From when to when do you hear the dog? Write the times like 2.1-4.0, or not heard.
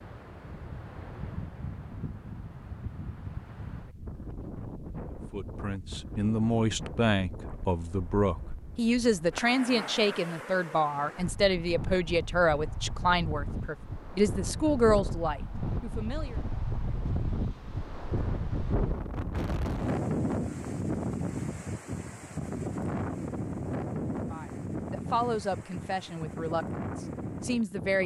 not heard.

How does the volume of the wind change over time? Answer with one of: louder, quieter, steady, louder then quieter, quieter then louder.
louder.